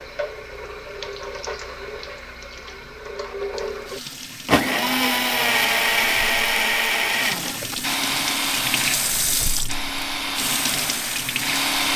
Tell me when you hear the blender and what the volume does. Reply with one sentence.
You can hear the blender from 4.5 to 11.9 s, getting quieter.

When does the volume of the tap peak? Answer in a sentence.
The volume of the tap peaks at 9 seconds.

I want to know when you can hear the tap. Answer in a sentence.
You can hear the tap from 0.0 to 11.9 s.